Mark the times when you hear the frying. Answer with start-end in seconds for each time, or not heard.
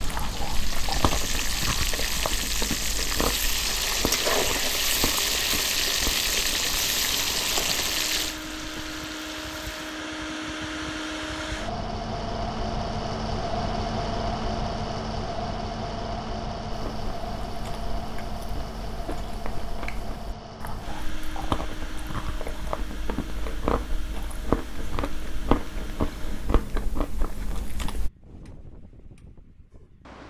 0.0-9.8.